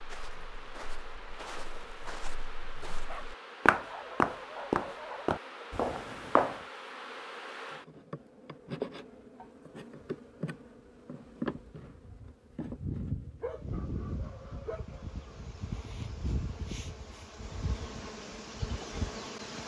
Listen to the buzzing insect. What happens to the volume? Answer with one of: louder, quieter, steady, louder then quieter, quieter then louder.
louder.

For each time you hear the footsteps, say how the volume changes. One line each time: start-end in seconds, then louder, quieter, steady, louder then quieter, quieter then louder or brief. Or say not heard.
0.0-6.7 louder then quieter.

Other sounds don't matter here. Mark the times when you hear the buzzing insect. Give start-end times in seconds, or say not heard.
0.0-19.6.